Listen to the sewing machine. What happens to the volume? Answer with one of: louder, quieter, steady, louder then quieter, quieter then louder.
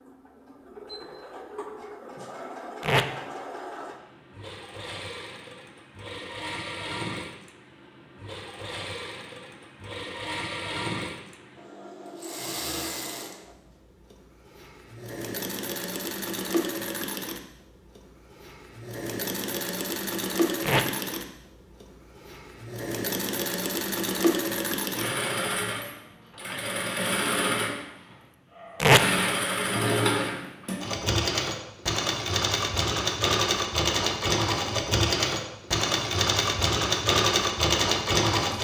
louder.